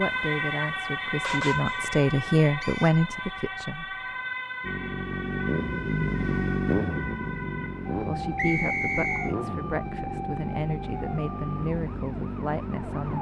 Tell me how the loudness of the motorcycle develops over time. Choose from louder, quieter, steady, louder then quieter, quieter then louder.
quieter.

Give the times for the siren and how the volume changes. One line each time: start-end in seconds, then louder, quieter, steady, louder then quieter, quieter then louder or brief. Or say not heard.
0.0-13.1 quieter.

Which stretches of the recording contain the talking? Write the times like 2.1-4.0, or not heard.
0.0-4.0, 8.1-13.1.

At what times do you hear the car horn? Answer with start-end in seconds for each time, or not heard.
1.2-1.9.